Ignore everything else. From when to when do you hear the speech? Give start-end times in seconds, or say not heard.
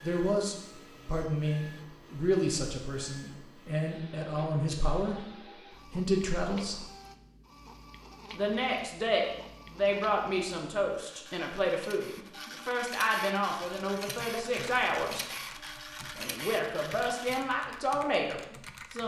0.0-6.8, 8.3-15.2, 16.1-19.0.